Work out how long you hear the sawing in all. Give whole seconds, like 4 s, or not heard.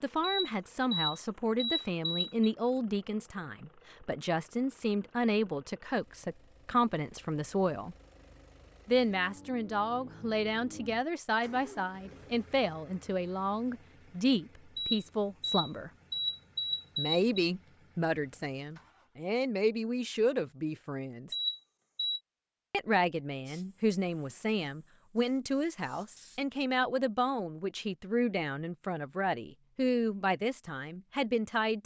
not heard.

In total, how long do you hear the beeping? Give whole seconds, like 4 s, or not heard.
6 s.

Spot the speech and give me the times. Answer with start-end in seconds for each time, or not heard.
0.0-8.0, 8.8-15.9, 16.9-21.4, 22.7-31.8.